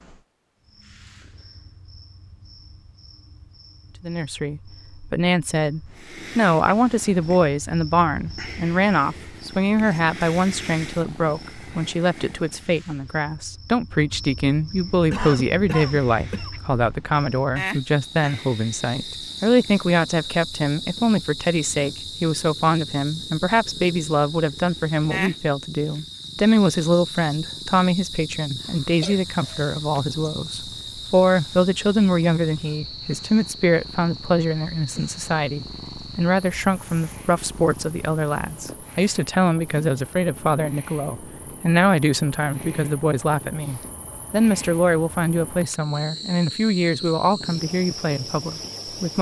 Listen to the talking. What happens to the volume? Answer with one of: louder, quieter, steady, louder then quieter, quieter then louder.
steady.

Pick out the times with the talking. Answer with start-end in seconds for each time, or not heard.
4.0-49.1.